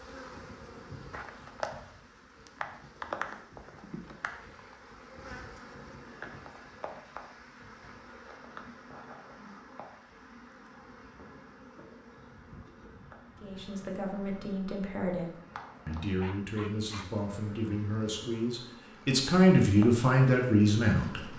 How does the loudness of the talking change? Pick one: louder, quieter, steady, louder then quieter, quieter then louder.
louder.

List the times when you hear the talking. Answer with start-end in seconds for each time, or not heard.
13.4-21.3.